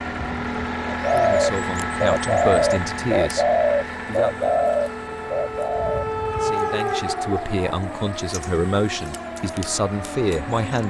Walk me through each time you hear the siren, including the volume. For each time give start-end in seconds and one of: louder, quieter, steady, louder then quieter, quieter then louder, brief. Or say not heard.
0.0-10.8 louder then quieter.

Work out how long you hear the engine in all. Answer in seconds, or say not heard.
11 s.